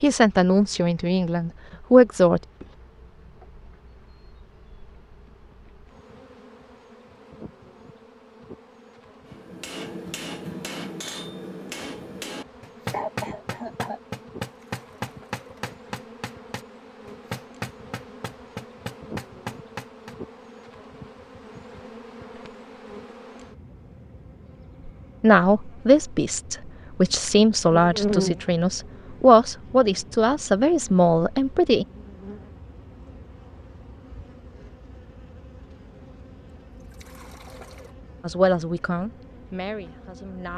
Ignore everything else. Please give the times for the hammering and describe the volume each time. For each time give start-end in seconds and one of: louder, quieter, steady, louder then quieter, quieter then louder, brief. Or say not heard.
9.3-20.1 steady.